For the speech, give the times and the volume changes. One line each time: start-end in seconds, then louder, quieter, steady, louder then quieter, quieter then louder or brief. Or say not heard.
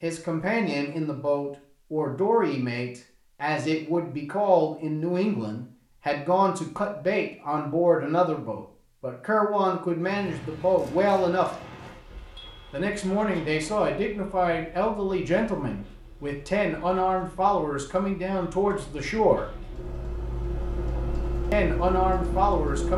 0.0-11.5 steady
12.7-19.4 steady
21.5-22.9 brief.